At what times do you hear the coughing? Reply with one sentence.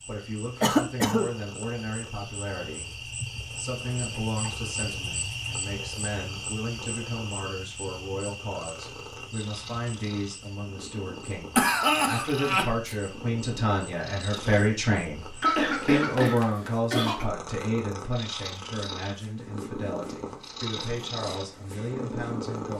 You can hear the coughing from 0.6 to 1.3 s, from 11.6 to 12.9 s and from 15.4 to 17.3 s.